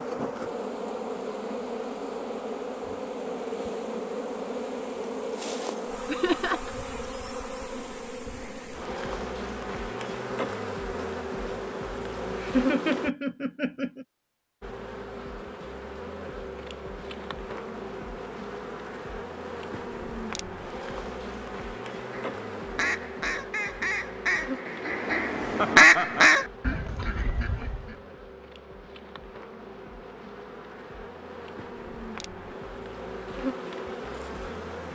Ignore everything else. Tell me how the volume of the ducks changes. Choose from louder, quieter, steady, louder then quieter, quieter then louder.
louder then quieter.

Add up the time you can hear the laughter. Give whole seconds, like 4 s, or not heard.
3 s.